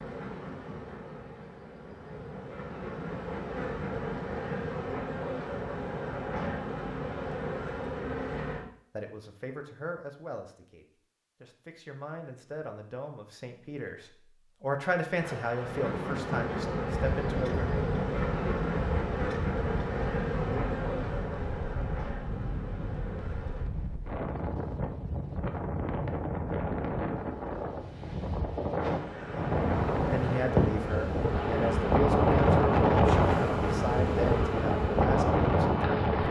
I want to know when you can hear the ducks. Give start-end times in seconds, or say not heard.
not heard.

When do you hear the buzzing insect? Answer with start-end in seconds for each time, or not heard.
0.0-8.7, 15.2-23.7, 28.8-36.2.